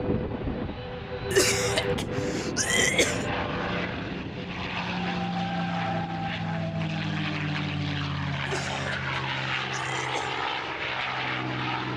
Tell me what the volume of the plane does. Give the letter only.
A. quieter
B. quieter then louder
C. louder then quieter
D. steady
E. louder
D.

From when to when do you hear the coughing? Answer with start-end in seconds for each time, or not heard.
1.3-3.2, 8.4-10.4.